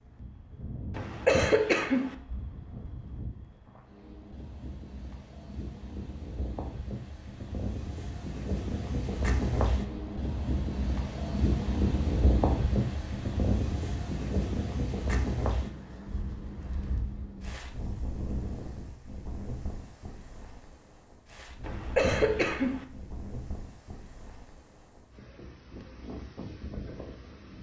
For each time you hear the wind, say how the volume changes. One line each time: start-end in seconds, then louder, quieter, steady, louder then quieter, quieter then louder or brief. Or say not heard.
0.0-27.5 louder then quieter.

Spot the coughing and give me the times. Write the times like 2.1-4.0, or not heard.
0.9-2.1, 21.6-22.9.